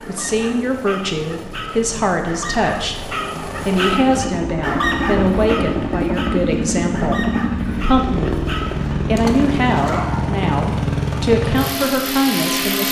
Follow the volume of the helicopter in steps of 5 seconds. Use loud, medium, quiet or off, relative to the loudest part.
medium, loud, loud.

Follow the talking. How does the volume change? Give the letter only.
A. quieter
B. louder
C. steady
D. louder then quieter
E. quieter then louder
C.